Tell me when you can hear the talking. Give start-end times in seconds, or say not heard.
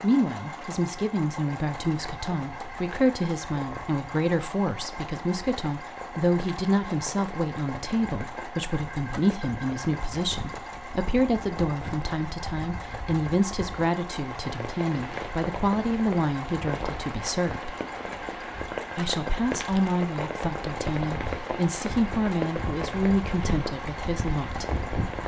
0.0-17.8, 18.9-24.7.